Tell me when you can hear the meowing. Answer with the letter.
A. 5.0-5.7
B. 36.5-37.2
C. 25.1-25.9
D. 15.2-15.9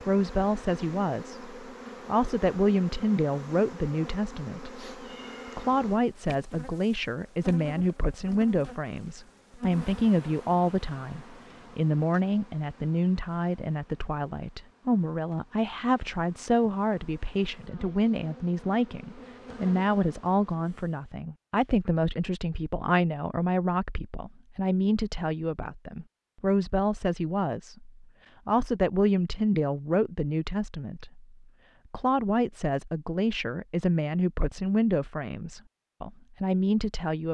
A.